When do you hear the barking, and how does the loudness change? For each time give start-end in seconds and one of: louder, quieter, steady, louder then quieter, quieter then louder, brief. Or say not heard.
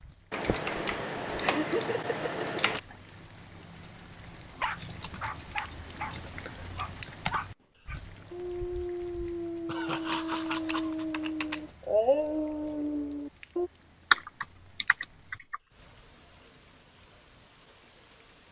4.5-13.7 louder.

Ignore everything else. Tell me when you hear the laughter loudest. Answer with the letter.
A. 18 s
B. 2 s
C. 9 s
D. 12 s
B.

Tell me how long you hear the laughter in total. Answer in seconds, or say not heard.
3 s.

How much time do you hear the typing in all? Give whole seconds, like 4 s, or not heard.
8 s.